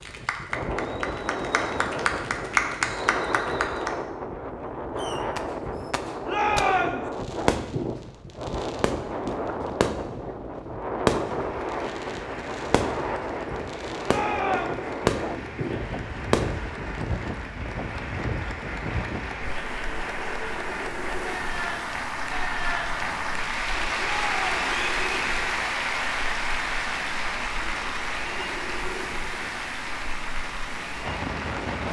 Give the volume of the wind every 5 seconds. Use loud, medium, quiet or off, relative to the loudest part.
loud, loud, loud, loud, medium, medium, loud.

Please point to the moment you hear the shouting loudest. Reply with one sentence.
The volume of the shouting peaks at 7 seconds.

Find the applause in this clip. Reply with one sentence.
You can hear the applause from 0.0 to 4.0 s and from 11.3 to 31.8 s.